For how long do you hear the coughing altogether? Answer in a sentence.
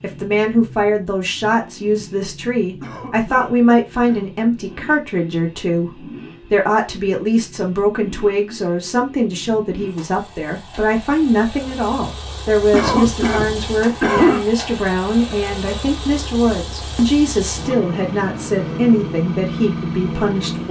You can hear the coughing for 3 seconds altogether.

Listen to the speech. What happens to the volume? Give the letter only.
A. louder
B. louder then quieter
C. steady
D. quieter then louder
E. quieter
C.